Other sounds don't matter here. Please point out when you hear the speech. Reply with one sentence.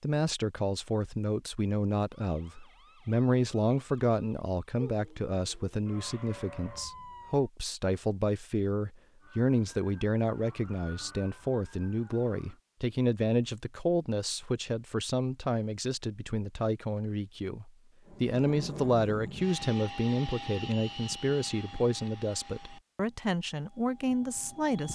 The speech can be heard from 0.0 to 24.8 s.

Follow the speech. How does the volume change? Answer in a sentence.
The loudness of the speech stays about the same.